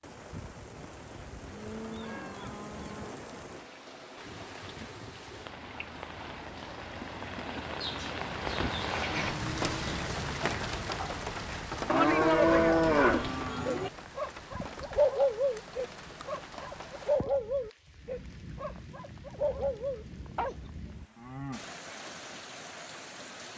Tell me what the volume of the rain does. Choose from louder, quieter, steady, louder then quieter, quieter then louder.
louder then quieter.